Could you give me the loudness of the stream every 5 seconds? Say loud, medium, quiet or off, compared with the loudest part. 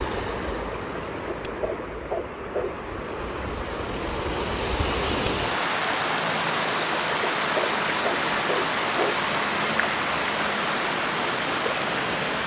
medium, loud, loud.